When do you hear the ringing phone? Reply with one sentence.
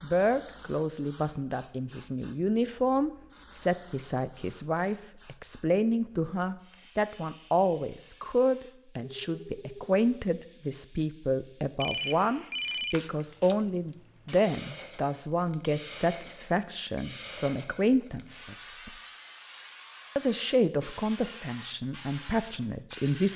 The ringing phone can be heard from 9.0 to 10.0 s and from 11.8 to 13.6 s.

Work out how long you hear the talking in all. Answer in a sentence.
You can hear the talking for 22 seconds altogether.